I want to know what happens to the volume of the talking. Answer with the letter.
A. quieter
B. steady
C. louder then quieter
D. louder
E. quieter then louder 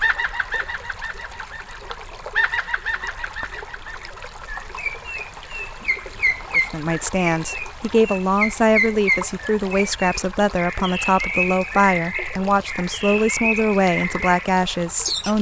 B.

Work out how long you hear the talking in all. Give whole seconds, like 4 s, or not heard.
9 s.